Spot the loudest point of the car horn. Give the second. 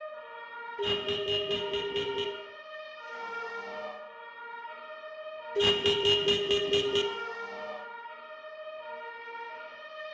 6 s.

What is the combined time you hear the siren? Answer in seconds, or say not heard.
10 s.